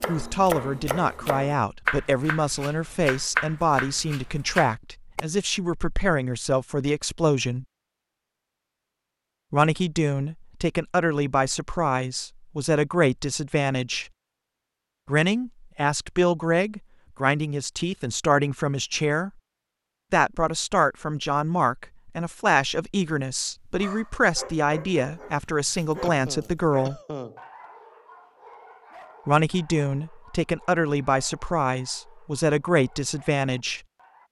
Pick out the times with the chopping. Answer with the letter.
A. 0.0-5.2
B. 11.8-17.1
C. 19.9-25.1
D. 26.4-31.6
A.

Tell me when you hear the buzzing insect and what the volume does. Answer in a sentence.
You can't hear the buzzing insect here.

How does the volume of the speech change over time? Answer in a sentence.
The volume of the speech stays about the same.